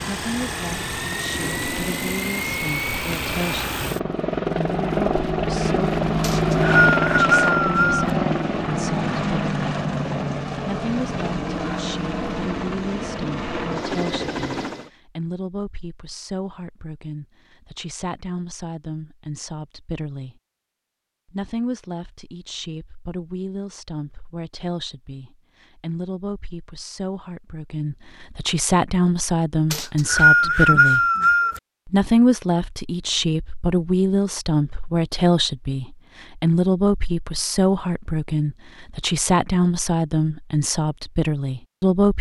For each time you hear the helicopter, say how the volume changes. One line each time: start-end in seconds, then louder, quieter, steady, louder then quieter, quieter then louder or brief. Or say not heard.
0.0-14.9 louder then quieter.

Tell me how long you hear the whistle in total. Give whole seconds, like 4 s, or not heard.
4 s.